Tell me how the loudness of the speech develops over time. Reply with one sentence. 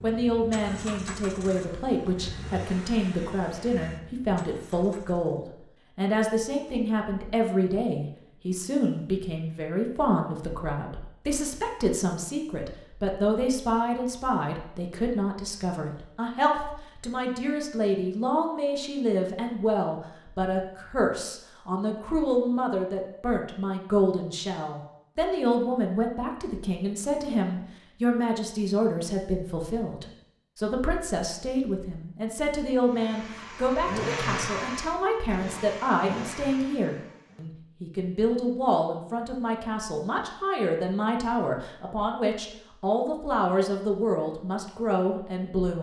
The loudness of the speech stays about the same.